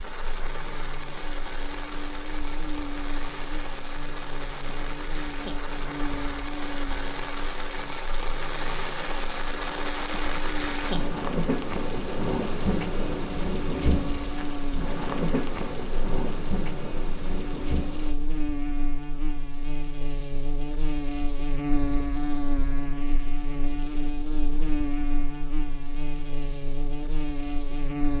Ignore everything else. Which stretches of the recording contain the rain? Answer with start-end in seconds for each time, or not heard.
0.0-18.1.